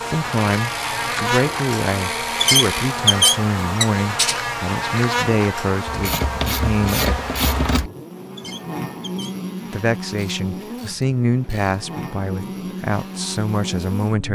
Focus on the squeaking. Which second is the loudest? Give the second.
3 s.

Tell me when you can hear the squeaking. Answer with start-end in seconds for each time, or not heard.
2.4-4.4, 8.3-9.3.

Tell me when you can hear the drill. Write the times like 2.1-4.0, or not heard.
not heard.